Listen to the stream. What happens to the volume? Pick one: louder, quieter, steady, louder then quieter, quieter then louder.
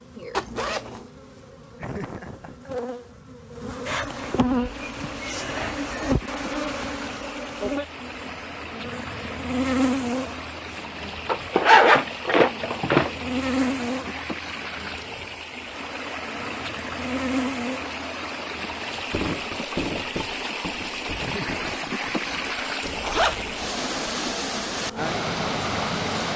louder.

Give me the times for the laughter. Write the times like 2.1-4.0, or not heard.
1.8-2.8, 21.1-22.1.